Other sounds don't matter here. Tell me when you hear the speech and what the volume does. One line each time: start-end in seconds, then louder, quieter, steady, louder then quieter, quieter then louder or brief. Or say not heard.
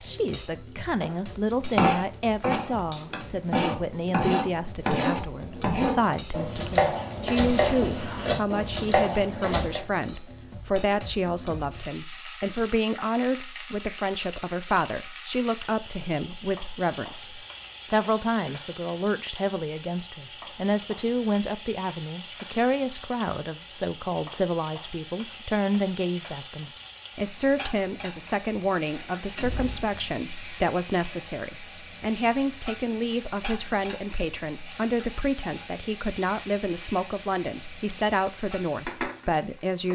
0.0-39.8 steady.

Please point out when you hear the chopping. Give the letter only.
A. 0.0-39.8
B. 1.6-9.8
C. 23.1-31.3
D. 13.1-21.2
B.